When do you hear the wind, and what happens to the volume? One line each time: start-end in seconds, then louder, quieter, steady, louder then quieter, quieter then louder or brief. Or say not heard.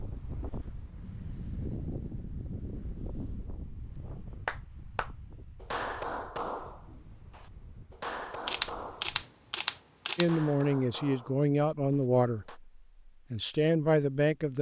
0.0-9.2 quieter.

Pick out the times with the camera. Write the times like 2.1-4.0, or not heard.
8.4-10.3.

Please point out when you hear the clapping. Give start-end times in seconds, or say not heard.
4.5-12.6.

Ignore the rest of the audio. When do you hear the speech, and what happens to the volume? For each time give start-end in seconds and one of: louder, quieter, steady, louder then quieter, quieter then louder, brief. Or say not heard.
10.2-14.5 quieter then louder.